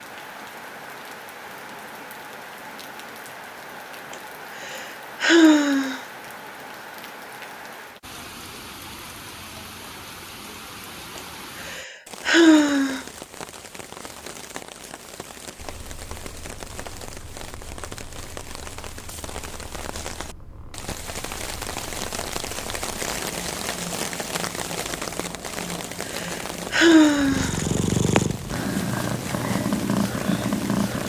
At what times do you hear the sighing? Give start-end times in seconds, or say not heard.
4.1-6.0, 11.2-13.0, 26.1-27.6.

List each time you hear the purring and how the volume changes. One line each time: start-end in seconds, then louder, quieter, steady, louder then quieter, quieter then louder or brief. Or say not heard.
15.6-31.0 louder.